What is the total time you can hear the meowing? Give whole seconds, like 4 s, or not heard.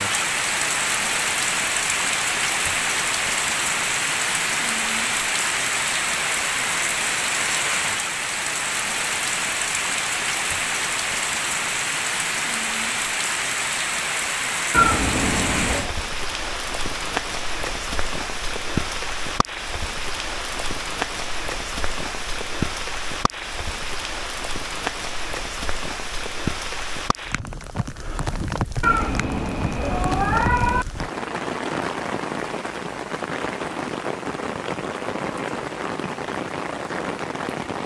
3 s.